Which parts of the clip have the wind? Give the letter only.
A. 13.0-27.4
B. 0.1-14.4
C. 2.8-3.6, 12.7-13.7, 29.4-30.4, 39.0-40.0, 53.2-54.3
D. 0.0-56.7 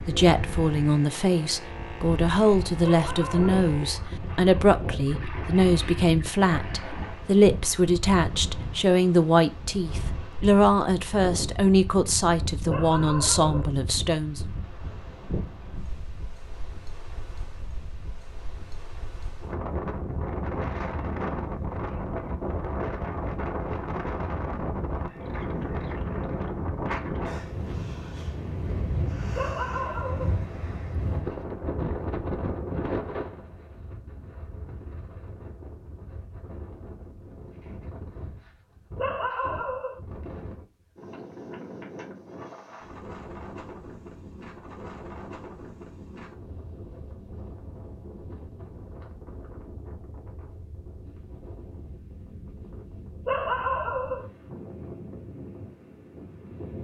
D.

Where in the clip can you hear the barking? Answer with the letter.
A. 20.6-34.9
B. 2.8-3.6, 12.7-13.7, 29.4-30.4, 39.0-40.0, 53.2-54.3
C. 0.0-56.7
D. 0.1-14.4
B.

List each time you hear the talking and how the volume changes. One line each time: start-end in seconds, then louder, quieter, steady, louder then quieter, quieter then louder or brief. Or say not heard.
0.1-14.4 steady.